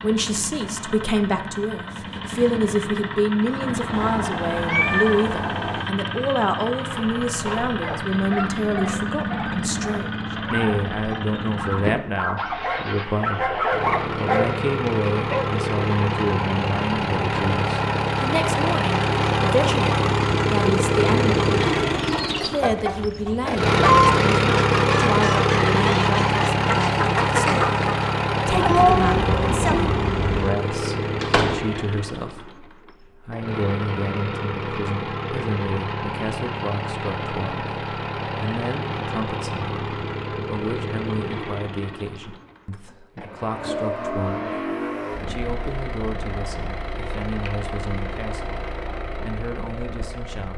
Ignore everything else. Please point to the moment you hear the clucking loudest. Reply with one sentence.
The volume of the clucking peaks at 24 seconds.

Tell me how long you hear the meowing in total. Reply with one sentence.
You can hear the meowing for 4 seconds altogether.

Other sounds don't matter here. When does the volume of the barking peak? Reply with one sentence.
The volume of the barking peaks at 14 seconds.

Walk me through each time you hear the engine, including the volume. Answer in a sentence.
You can hear the engine from 0.0 to 50.5 s, getting louder then quieter.